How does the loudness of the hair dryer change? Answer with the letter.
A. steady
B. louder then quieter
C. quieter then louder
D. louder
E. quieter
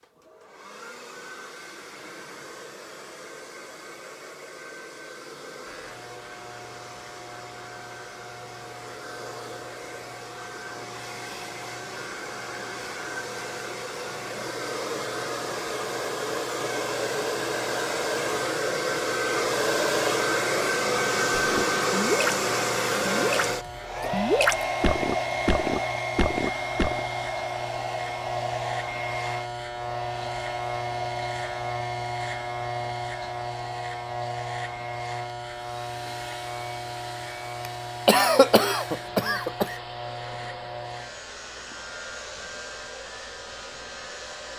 B.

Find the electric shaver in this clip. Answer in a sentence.
The electric shaver can be heard from 5.7 to 44.5 s.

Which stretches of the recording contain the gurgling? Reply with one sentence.
You can hear the gurgling from 21.6 to 27.0 s.